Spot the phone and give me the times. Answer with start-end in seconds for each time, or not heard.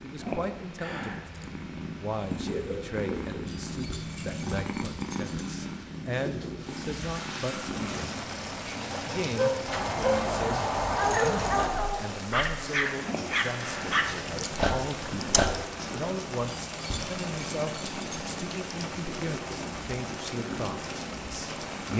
not heard.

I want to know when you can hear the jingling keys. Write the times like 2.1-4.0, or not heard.
3.5-5.5, 9.7-11.7, 16.6-18.4.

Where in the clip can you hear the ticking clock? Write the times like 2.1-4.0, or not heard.
not heard.